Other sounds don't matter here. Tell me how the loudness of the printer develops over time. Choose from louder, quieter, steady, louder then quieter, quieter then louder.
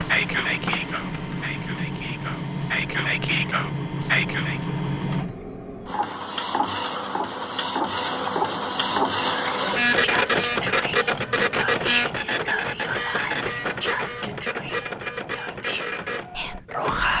louder then quieter.